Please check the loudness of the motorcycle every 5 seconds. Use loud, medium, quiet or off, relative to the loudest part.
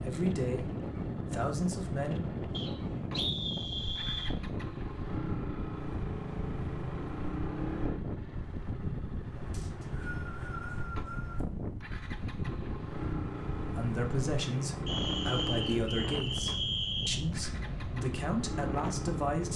medium, loud, loud, loud.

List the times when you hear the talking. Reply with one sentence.
You can hear the talking from 0.0 to 0.7 s, from 1.3 to 2.2 s and from 13.7 to 19.5 s.